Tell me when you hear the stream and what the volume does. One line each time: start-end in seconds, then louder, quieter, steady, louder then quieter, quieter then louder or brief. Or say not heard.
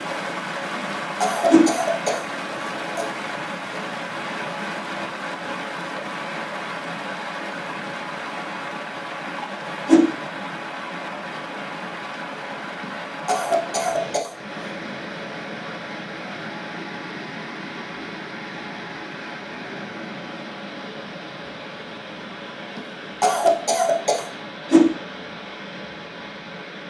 0.0-26.8 quieter.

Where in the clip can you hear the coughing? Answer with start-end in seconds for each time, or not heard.
0.8-3.1, 12.8-14.3, 22.8-24.3.